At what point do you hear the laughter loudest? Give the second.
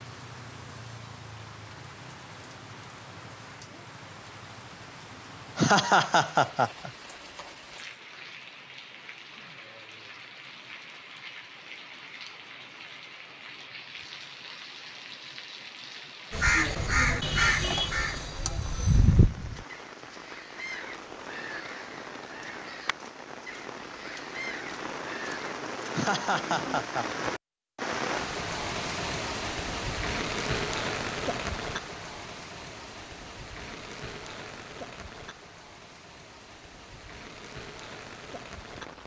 6 s.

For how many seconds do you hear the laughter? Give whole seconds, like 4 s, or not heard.
3 s.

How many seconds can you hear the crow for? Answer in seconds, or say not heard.
9 s.